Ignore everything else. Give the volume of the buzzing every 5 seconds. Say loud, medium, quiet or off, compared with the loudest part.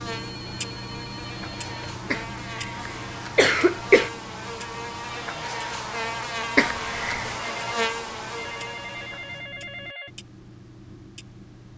medium, loud, off.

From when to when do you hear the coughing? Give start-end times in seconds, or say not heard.
2.1-4.1, 6.5-7.4.